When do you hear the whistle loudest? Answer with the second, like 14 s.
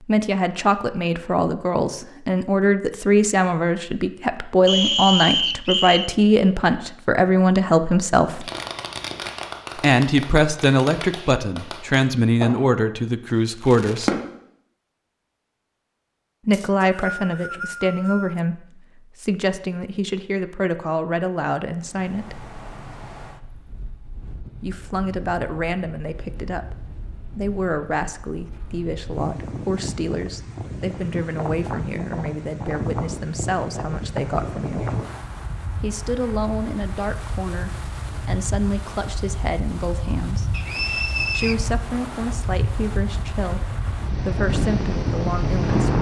5 s.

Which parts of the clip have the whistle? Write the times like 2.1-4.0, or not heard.
4.7-6.1, 16.5-18.4, 40.5-41.5.